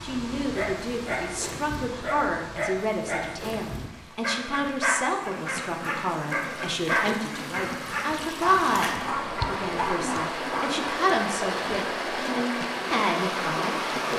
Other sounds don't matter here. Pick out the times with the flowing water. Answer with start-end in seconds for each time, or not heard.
0.0-14.1.